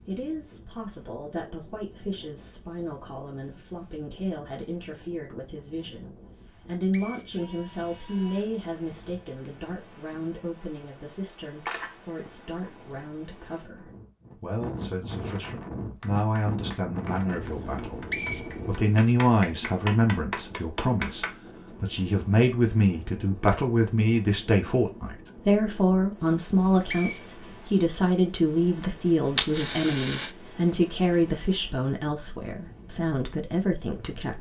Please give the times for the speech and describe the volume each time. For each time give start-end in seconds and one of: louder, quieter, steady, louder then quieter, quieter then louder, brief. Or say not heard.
0.1-34.3 louder.